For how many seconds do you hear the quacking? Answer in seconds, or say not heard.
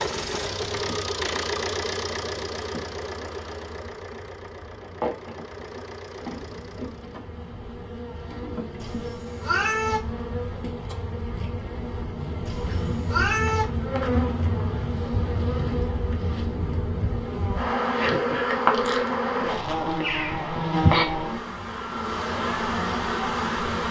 not heard.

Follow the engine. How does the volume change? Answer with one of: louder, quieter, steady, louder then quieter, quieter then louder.
quieter.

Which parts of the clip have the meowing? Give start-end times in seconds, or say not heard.
8.8-10.0, 12.4-13.7.